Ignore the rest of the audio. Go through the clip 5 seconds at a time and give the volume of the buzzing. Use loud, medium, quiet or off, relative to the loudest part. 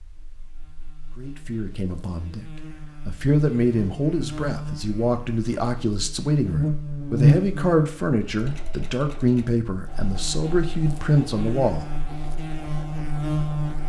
quiet, loud, medium.